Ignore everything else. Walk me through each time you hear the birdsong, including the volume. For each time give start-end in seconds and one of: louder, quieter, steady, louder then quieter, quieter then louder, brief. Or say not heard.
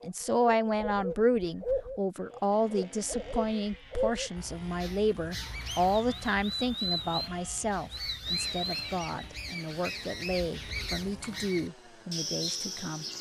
0.0-13.1 steady.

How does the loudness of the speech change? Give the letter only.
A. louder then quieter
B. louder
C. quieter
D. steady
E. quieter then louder
C.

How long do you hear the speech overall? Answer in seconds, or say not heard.
13 s.